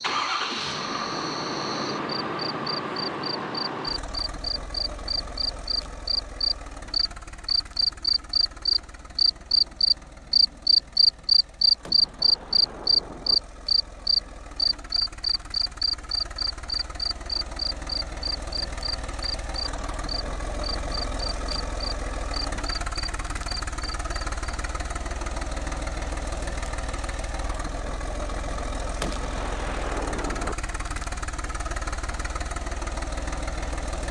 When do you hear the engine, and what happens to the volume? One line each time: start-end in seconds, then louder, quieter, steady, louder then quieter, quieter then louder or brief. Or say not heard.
0.0-34.0 quieter then louder.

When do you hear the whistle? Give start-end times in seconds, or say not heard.
not heard.